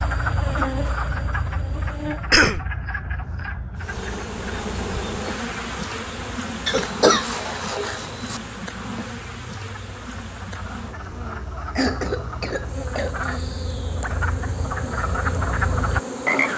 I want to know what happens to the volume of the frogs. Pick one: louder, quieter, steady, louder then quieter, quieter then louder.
quieter then louder.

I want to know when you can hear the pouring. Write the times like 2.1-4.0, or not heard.
not heard.